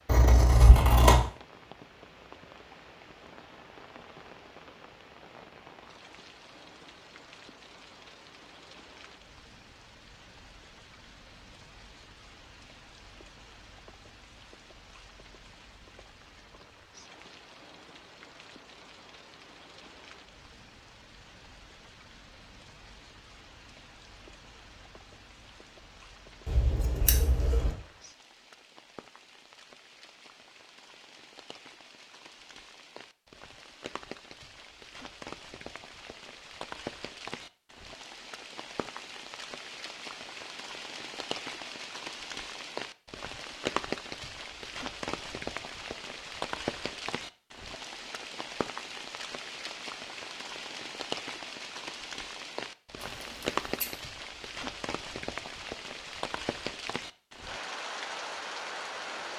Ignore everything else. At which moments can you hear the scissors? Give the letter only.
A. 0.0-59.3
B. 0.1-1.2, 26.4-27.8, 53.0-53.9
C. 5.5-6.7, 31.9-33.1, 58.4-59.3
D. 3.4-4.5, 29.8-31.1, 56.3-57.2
B.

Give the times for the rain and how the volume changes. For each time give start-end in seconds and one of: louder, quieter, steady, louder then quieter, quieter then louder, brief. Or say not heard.
0.0-59.3 louder.